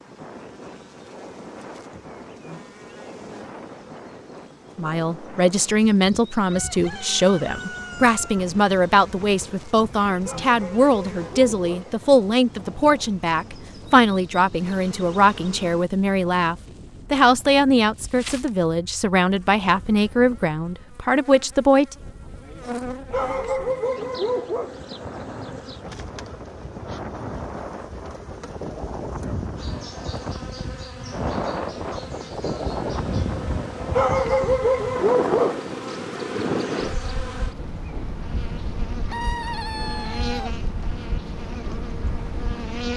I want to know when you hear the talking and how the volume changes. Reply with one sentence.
You can hear the talking from 4.8 to 21.9 s, at a steady volume.